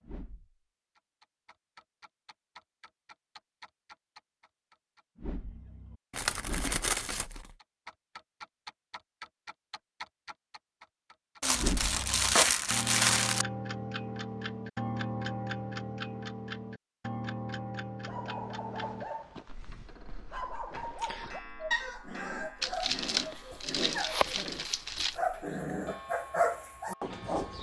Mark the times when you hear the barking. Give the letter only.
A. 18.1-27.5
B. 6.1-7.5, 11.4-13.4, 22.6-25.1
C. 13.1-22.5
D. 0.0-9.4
A.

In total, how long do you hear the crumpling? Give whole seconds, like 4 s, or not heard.
6 s.